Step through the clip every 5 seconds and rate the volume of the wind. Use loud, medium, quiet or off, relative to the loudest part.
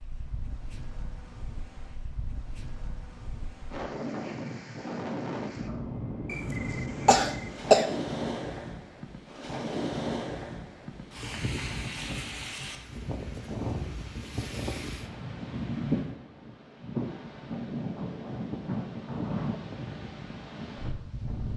medium, loud, loud, loud, medium.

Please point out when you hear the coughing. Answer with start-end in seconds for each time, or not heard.
6.3-7.8.